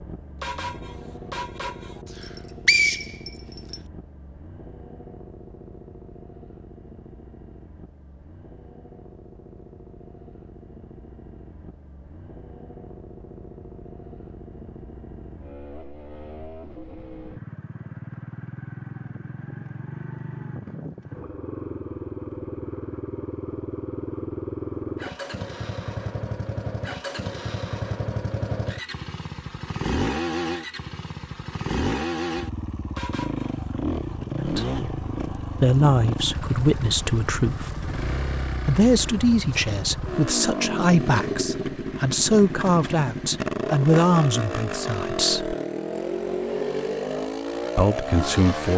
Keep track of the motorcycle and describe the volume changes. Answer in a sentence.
The loudness of the motorcycle goes up.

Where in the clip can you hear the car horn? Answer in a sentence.
The car horn can be heard from 0.4 to 2.0 s and from 33.0 to 33.7 s.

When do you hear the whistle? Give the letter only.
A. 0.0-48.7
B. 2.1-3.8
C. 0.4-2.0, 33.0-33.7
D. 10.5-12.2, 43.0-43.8
B.